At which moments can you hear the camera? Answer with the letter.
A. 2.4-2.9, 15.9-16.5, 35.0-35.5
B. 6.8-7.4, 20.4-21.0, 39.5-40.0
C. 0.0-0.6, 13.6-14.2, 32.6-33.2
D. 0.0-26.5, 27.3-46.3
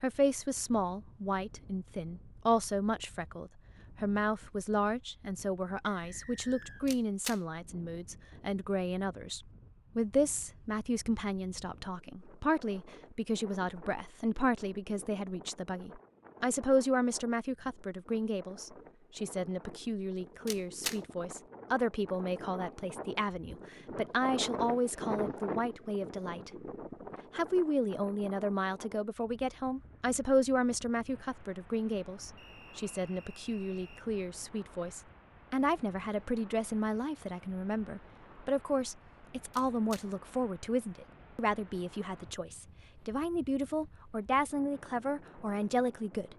B.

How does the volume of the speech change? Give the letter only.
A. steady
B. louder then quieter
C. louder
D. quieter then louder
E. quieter
A.